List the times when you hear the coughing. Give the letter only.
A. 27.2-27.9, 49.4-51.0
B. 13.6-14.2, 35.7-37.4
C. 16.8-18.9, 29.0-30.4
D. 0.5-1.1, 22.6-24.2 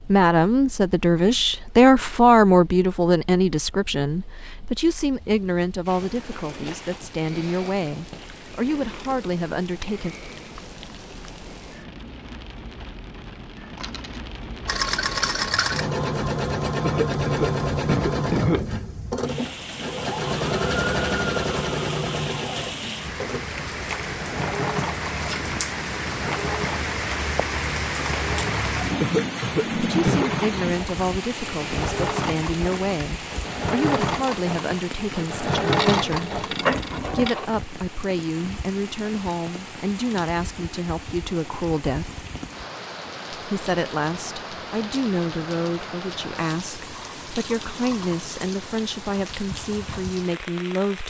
C.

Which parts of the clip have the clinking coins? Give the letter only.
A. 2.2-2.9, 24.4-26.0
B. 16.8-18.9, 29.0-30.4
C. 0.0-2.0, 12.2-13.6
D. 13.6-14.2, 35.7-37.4
D.